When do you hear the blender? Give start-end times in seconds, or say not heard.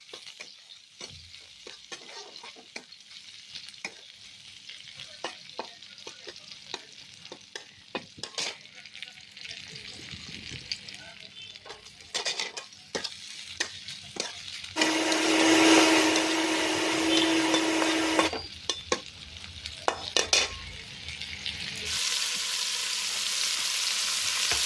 14.8-18.3.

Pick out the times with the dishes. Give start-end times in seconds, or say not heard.
not heard.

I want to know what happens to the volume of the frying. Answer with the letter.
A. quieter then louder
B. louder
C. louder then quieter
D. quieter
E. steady
B.